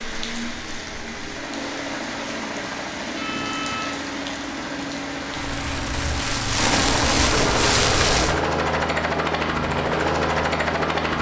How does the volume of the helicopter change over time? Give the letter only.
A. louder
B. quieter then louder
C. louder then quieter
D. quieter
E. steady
A.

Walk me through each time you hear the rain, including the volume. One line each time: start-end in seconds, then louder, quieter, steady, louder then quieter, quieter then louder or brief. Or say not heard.
0.0-8.4 louder.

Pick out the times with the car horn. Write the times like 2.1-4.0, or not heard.
3.0-4.0.